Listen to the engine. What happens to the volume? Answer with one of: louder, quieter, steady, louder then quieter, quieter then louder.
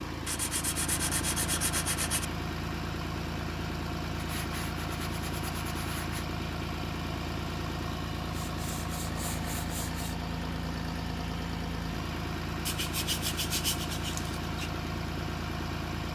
steady.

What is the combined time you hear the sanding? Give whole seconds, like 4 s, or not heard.
8 s.